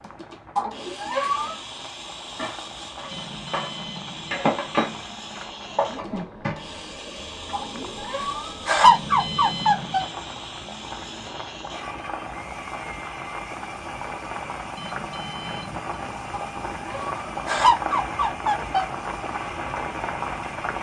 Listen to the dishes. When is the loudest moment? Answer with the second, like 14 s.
5 s.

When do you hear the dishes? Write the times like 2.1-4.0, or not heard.
1.8-7.5.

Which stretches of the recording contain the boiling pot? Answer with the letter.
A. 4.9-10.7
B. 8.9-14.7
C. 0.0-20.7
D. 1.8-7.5
C.